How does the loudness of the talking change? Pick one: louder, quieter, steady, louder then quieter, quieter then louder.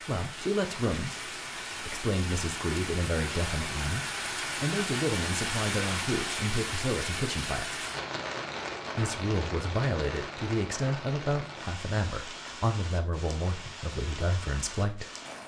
steady.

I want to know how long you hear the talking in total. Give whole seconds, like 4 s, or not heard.
14 s.